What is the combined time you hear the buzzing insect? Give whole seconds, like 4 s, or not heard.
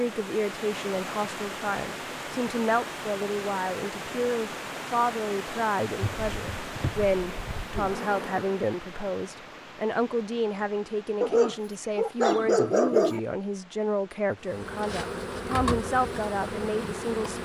6 s.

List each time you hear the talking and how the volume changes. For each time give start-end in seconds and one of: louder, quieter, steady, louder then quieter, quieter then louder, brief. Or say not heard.
0.0-17.4 steady.